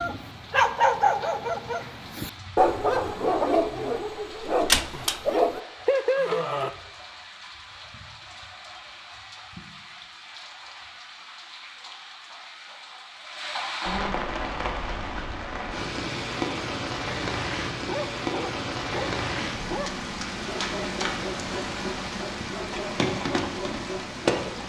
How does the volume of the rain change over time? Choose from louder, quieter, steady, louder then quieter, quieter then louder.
louder.